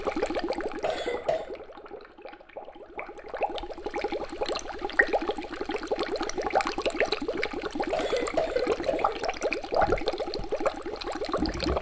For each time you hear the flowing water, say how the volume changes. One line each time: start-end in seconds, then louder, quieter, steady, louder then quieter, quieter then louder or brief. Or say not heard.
0.0-11.7 louder.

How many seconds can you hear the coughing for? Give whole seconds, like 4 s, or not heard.
2 s.